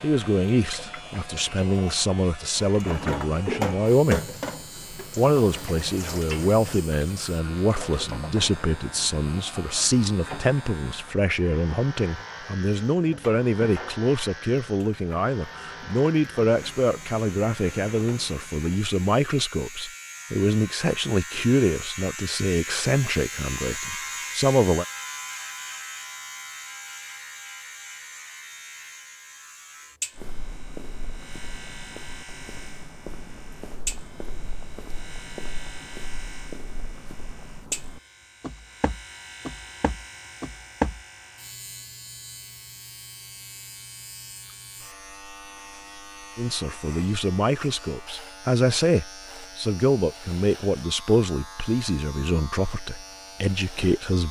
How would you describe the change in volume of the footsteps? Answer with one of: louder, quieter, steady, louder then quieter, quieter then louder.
louder.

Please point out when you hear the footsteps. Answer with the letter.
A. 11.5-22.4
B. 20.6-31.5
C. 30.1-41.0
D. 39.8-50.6
C.